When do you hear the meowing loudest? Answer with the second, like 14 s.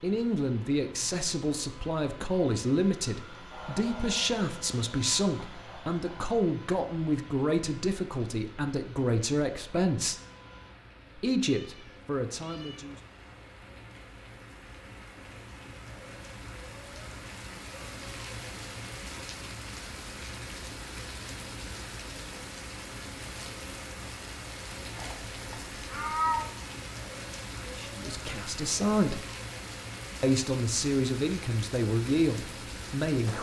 26 s.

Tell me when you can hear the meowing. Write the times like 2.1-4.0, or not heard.
11.4-13.5, 24.9-26.5.